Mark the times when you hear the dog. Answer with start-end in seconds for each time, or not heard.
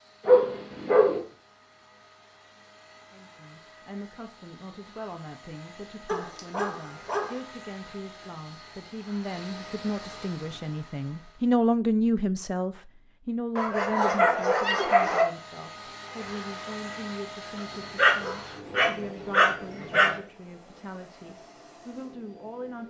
0.2-1.2, 6.0-7.4, 13.6-15.2, 17.9-20.1.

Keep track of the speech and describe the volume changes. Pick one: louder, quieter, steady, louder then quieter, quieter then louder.
louder then quieter.